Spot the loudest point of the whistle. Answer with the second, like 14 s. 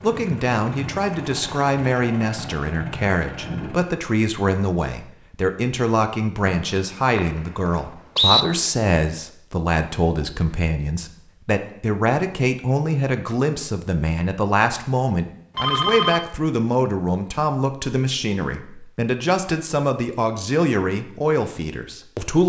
8 s.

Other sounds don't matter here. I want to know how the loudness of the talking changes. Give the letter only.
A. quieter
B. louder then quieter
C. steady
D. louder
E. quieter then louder
C.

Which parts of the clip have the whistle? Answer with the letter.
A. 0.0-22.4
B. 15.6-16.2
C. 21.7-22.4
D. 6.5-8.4
D.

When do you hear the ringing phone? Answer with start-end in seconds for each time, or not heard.
15.6-16.2.